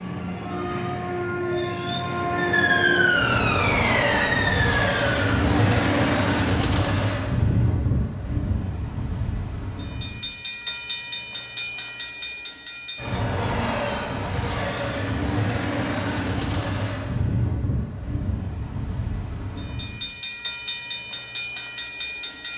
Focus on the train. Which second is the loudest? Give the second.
6 s.